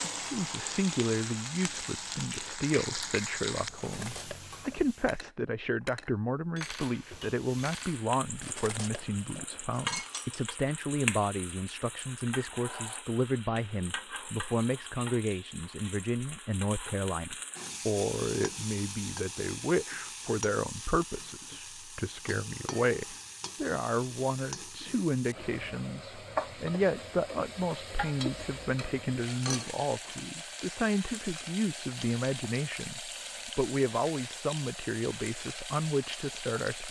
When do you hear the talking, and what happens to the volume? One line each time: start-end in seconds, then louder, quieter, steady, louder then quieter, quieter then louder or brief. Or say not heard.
0.1-36.8 steady.